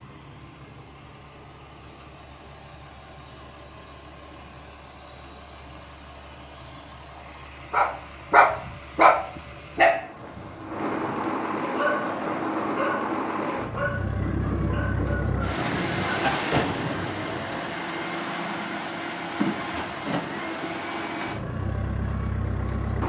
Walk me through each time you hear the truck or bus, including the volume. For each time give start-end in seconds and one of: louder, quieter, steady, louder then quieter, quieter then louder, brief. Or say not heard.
0.0-23.0 louder.